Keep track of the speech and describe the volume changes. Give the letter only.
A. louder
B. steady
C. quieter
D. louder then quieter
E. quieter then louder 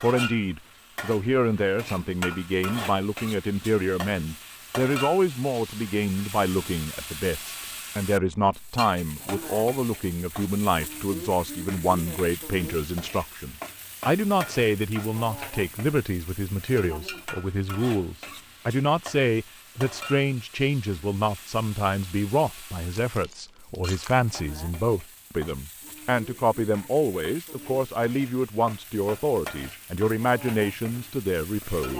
B.